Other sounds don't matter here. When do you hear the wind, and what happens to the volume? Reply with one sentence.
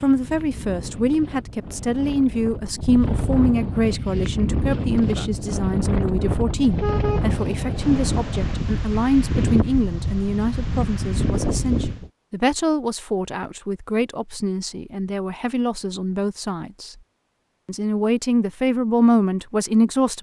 You can hear the wind from 0.0 to 12.1 s, getting louder.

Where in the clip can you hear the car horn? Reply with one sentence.
You can hear the car horn from 6.6 to 8.6 s.